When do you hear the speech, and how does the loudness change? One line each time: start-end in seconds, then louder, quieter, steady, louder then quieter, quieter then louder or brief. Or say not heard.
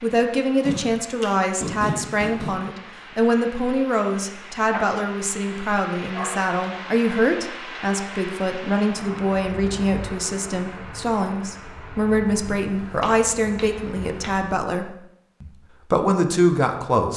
0.0-17.1 steady.